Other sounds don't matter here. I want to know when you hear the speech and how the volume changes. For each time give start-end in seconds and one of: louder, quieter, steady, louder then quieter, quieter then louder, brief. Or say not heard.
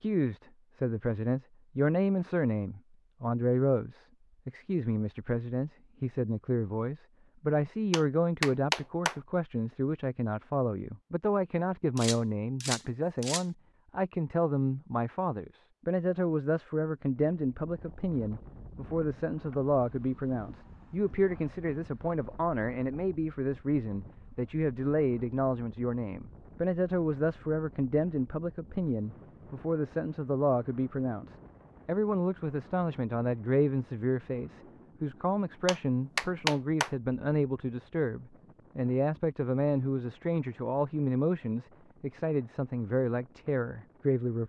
0.0-44.4 steady.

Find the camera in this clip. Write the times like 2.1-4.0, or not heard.
11.9-13.4.